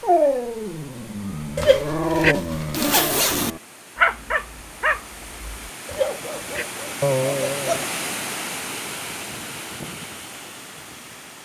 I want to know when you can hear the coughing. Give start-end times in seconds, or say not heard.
7.0-7.8.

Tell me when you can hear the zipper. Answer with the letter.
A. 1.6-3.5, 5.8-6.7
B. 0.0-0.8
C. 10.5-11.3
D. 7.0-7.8
A.